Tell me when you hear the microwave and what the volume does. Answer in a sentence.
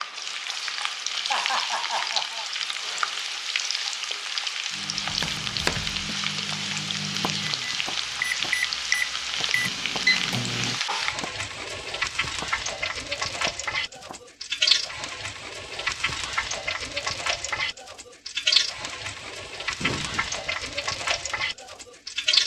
The microwave can be heard from 4.7 to 10.8 s, getting louder.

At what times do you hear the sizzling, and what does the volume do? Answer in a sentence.
The sizzling can be heard from 0.0 to 22.4 s, at a steady volume.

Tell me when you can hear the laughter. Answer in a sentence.
The laughter can be heard from 1.2 to 2.5 s and from 19.8 to 20.4 s.